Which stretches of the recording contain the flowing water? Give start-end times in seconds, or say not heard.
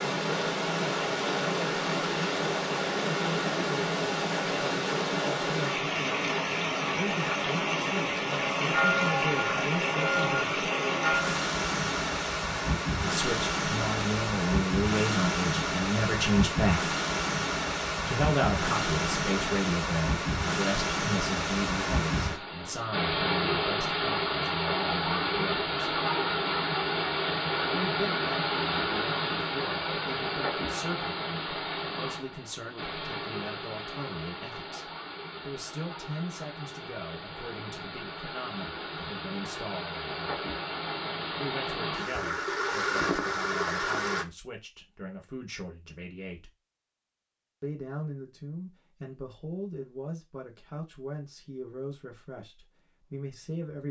0.0-44.2.